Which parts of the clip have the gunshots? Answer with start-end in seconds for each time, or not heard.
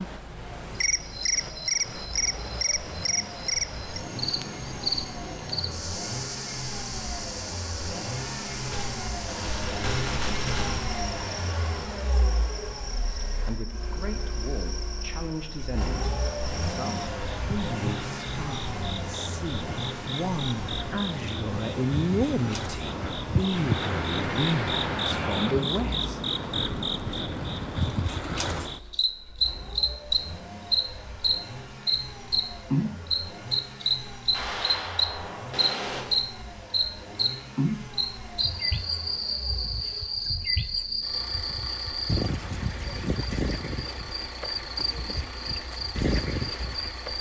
8.5-10.8, 23.5-25.6, 34.3-36.0.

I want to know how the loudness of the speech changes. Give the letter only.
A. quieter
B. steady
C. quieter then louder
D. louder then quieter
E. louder
E.